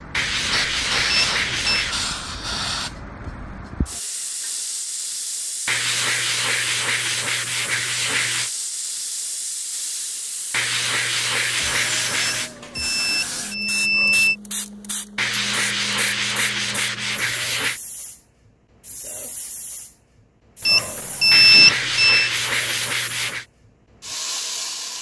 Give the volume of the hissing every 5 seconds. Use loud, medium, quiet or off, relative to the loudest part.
loud, loud, loud, medium, loud.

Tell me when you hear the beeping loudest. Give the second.
22 s.